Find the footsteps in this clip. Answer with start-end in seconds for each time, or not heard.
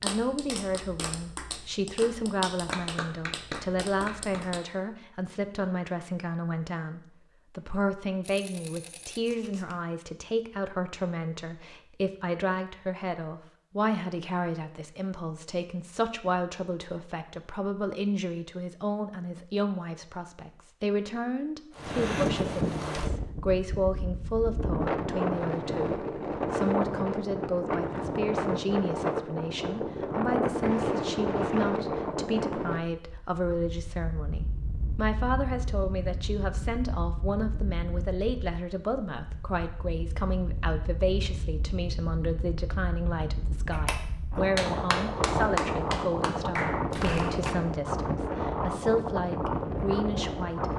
not heard.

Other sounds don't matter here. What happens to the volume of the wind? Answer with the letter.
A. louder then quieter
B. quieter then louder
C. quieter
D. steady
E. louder
B.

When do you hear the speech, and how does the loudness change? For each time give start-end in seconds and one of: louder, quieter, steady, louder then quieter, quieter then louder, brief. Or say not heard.
0.0-50.7 steady.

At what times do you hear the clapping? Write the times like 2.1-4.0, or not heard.
0.0-4.6, 43.7-47.5.